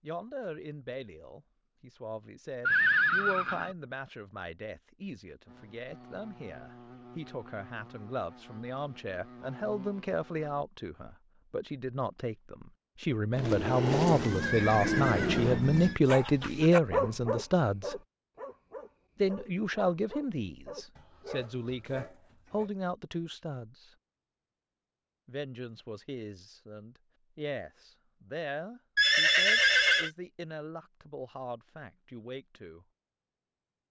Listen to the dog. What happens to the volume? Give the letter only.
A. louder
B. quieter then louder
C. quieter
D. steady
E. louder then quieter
C.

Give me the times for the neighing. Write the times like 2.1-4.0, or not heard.
2.6-3.8, 13.3-16.0, 28.9-30.1.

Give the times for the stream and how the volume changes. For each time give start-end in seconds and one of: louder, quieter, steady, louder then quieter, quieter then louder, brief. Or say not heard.
not heard.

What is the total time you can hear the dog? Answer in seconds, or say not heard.
7 s.